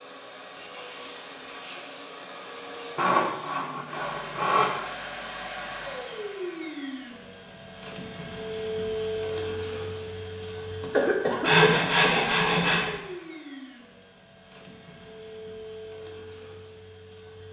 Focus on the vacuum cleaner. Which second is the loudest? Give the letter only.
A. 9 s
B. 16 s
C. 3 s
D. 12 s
A.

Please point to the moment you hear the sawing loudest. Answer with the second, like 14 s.
12 s.